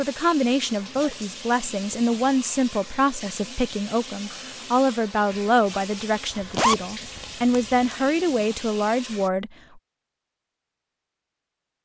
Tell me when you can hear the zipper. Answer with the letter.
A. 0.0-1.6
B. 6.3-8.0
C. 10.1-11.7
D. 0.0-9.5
B.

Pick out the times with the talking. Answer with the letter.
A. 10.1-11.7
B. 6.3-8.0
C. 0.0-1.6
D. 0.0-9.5
D.